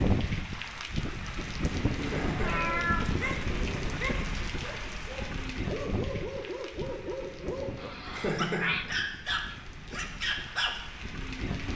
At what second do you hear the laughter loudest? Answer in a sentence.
The loudest moment of the laughter is at 8 seconds.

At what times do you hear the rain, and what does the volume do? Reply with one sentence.
The rain can be heard from 0.0 to 11.7 s, getting quieter.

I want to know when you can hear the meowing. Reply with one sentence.
The meowing can be heard from 1.9 to 4.0 s and from 7.8 to 8.8 s.